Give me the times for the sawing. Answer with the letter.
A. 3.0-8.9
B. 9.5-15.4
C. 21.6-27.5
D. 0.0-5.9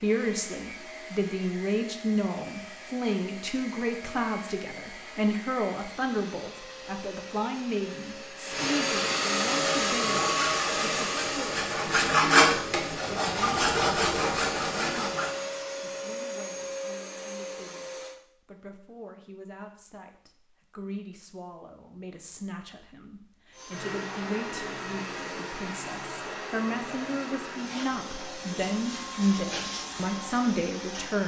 B.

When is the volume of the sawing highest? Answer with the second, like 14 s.
12 s.